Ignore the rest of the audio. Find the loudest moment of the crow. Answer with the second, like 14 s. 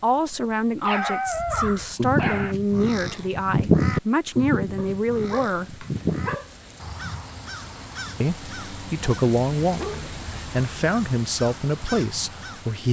4 s.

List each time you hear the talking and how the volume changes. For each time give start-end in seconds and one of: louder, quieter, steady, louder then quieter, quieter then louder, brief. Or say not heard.
0.0-5.8 steady
8.2-12.8 steady.